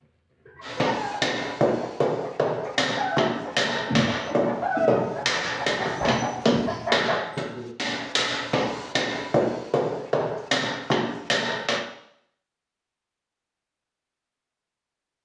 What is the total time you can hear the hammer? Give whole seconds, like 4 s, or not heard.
11 s.